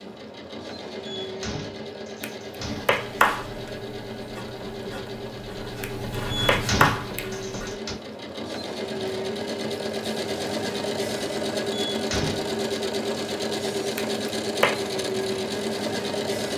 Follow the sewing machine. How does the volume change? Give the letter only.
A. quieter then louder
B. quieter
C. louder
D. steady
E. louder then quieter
C.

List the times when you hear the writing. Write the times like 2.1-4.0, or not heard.
2.8-7.8.